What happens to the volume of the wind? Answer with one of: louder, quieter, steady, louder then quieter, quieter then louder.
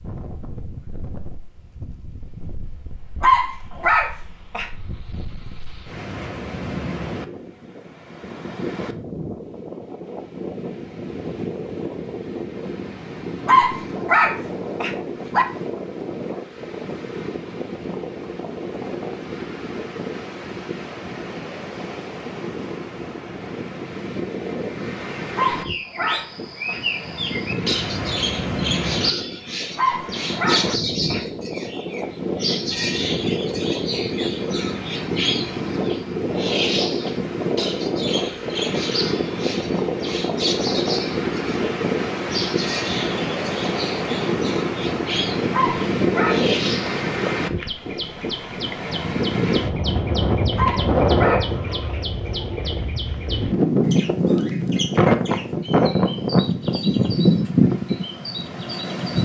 louder.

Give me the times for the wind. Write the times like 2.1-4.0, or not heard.
0.0-59.2.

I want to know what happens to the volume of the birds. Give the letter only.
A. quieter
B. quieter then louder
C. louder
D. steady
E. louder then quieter
A.